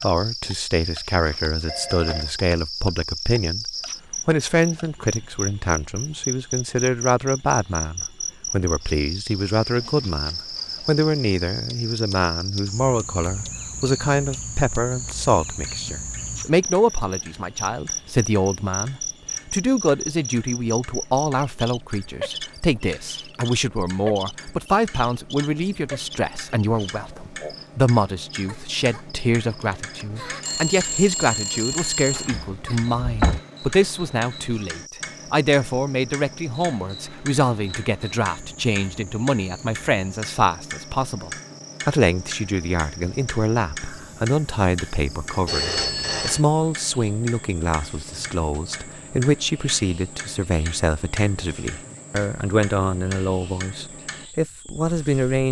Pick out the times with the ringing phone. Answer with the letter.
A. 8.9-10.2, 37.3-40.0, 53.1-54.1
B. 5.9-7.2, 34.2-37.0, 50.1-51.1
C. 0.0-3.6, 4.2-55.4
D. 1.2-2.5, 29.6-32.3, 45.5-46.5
D.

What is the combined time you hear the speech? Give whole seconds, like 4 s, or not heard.
55 s.